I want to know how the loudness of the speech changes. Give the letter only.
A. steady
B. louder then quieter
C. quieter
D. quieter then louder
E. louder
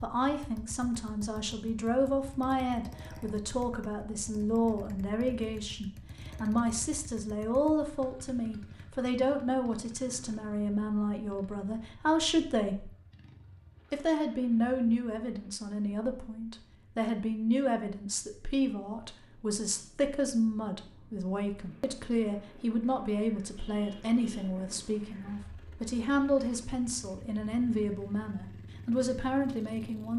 A.